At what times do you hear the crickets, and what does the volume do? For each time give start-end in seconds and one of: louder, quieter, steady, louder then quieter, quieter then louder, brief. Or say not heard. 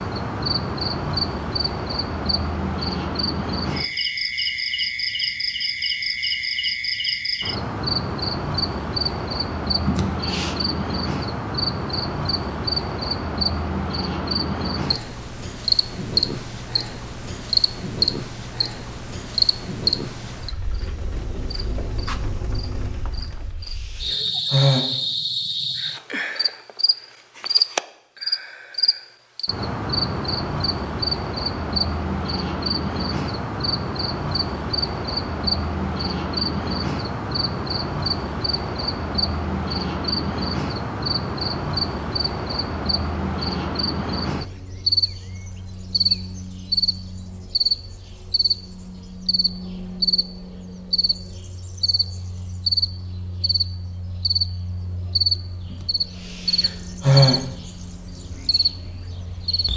0.0-59.7 steady.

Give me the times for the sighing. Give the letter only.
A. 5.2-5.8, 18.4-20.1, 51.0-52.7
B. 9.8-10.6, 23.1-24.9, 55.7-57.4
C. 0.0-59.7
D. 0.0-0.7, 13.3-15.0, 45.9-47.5
B.